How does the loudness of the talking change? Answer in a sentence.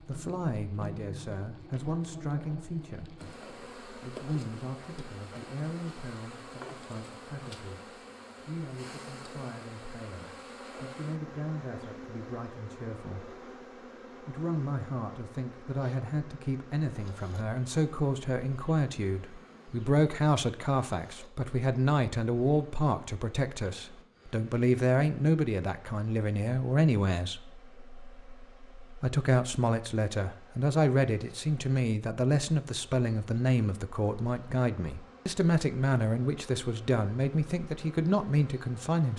The volume of the talking goes up.